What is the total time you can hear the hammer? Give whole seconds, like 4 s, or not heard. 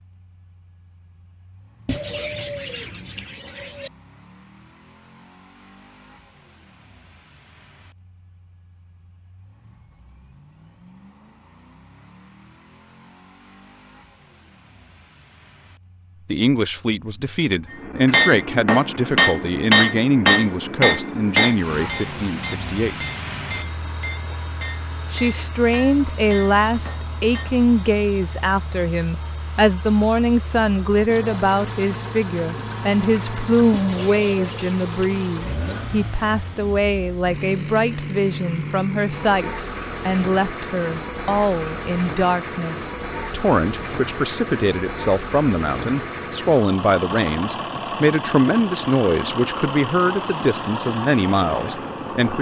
10 s.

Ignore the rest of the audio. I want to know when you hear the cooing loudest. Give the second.
2 s.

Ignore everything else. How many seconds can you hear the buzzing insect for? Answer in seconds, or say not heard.
not heard.